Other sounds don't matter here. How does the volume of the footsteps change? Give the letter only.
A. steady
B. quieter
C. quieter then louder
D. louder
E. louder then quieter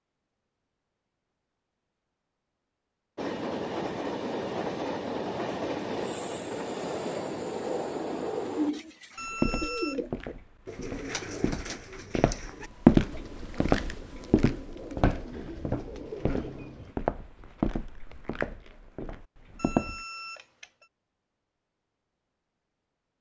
E.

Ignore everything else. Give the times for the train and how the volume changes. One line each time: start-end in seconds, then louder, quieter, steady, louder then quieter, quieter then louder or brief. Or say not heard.
3.1-8.8 steady.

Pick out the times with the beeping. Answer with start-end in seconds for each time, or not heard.
9.2-10.0, 19.6-20.9.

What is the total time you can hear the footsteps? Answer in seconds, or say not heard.
11 s.